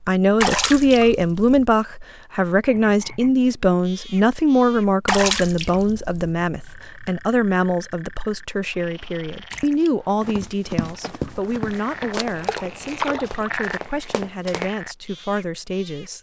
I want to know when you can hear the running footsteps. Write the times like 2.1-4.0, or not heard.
10.2-14.7.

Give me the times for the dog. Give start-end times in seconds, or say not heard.
not heard.